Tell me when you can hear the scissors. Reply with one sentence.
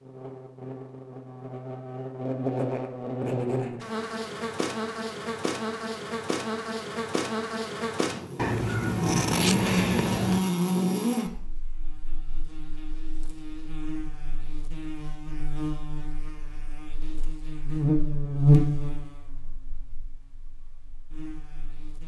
The scissors can be heard from 8.3 to 10.4 s.